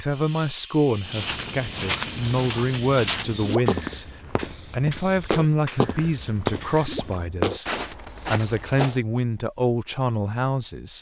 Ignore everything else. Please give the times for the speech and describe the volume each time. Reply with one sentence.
You can hear the speech from 0.0 to 10.9 s, at a steady volume.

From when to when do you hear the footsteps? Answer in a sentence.
The footsteps can be heard from 1.0 to 9.0 s.